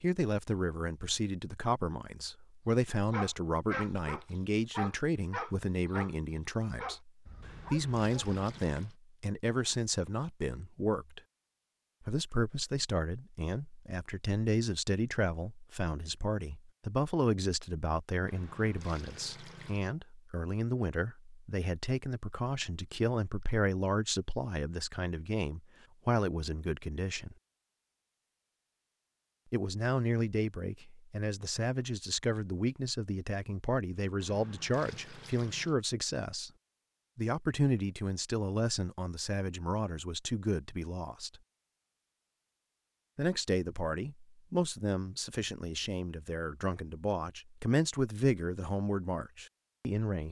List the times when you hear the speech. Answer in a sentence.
The speech can be heard from 0.0 to 7.1 s, from 7.7 to 11.2 s, from 12.1 to 27.4 s, from 29.5 to 36.5 s, from 37.1 to 41.4 s and from 43.1 to 50.2 s.